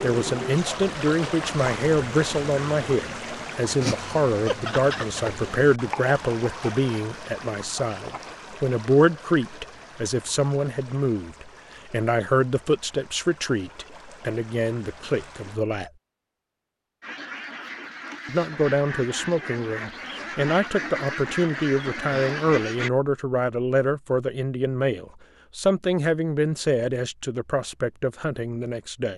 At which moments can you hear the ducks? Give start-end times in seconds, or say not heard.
17.0-22.9.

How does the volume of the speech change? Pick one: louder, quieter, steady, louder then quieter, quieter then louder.
steady.